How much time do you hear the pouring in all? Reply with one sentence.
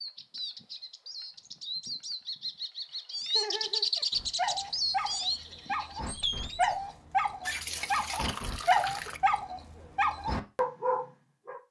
The pouring can be heard for 2 seconds in total.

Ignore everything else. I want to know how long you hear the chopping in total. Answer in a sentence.
You can't hear the chopping here.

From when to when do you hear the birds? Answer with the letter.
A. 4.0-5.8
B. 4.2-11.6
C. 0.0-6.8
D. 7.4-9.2
C.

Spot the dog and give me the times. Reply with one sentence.
You can hear the dog from 4.2 to 11.6 s.